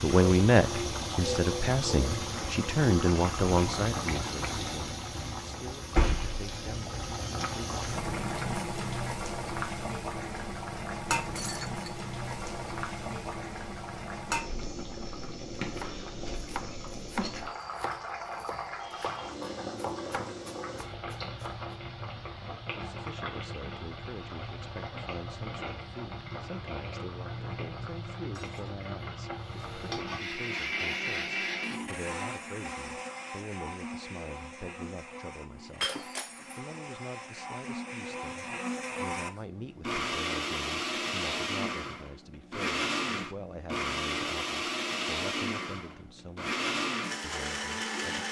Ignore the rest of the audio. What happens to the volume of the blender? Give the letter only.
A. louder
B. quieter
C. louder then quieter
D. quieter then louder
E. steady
D.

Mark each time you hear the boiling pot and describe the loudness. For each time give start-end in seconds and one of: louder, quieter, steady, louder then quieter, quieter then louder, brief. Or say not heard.
0.0-30.2 quieter.